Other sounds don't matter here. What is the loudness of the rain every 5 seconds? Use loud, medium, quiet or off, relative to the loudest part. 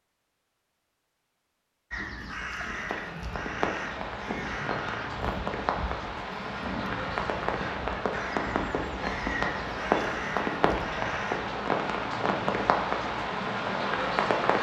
medium, loud, loud.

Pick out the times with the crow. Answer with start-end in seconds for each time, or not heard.
1.9-11.5.